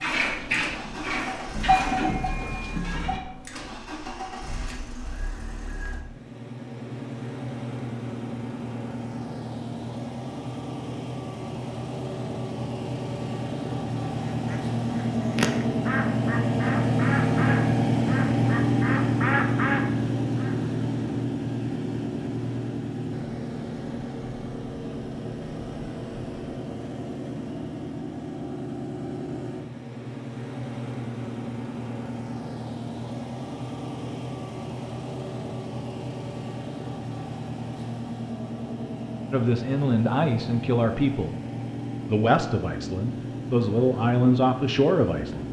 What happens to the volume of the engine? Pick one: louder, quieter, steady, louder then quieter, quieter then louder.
louder then quieter.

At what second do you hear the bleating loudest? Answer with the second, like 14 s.
2 s.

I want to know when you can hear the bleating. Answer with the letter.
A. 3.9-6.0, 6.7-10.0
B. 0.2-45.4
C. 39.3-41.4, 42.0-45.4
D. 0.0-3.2
D.